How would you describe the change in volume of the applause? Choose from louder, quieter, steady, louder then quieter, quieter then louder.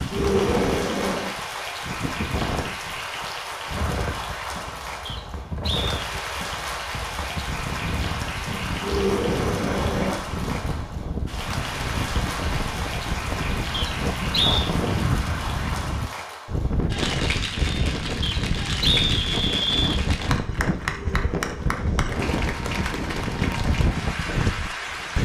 steady.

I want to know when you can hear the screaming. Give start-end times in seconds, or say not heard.
0.1-1.4, 8.8-10.2, 20.9-22.1.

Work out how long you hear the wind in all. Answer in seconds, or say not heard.
25 s.